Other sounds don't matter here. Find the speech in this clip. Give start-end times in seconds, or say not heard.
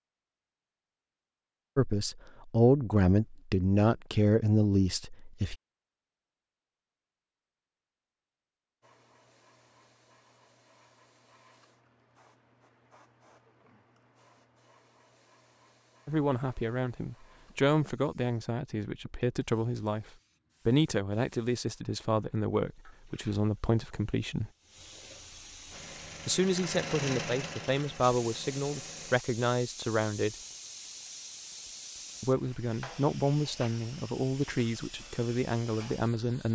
1.8-5.5, 16.1-24.5, 26.2-30.4, 32.2-36.5.